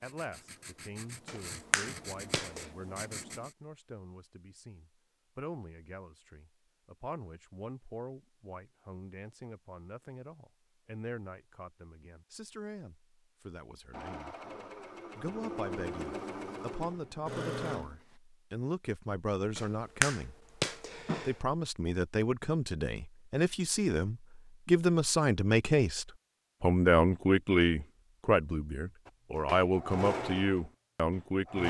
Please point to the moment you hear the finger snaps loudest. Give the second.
20 s.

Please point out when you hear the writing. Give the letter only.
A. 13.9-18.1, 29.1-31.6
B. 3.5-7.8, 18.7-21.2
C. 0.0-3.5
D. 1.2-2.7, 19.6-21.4
C.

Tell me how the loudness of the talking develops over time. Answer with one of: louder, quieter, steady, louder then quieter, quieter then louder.
louder.